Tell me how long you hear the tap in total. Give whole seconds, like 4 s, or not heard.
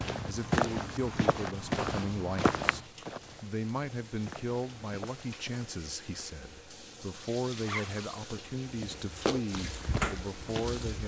8 s.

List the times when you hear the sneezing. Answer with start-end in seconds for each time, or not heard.
not heard.